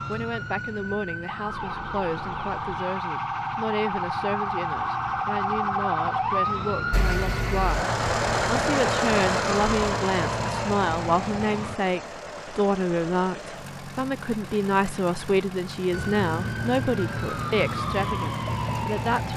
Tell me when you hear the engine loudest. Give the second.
9 s.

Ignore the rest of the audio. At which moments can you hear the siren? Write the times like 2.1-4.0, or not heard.
0.0-11.8, 15.9-19.3.